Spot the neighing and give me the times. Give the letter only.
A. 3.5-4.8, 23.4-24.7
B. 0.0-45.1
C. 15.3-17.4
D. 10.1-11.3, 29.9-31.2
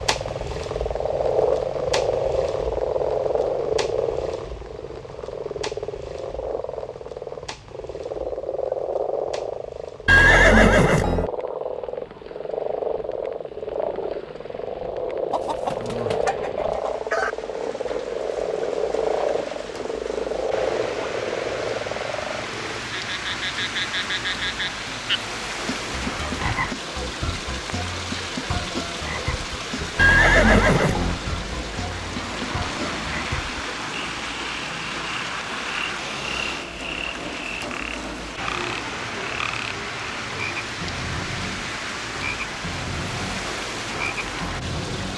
D.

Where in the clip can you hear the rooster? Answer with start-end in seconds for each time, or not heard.
15.3-17.4.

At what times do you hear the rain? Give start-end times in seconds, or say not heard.
0.0-45.1.